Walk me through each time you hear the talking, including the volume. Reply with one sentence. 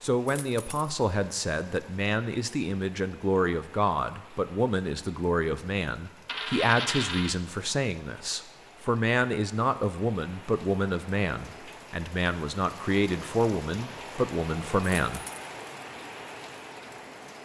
The talking can be heard from 0.0 to 15.2 s, at a steady volume.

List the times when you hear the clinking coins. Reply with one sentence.
You can hear the clinking coins from 0.2 to 0.9 s, from 6.2 to 7.4 s and from 15.1 to 15.5 s.